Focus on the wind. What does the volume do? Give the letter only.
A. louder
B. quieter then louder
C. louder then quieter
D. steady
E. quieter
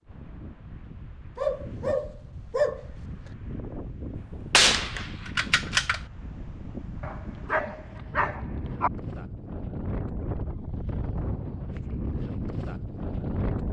A.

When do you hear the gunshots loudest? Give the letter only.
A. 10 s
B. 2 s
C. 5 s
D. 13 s
C.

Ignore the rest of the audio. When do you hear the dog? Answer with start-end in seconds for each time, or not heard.
1.4-3.3, 7.0-8.9.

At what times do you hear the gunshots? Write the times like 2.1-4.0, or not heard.
4.2-6.0.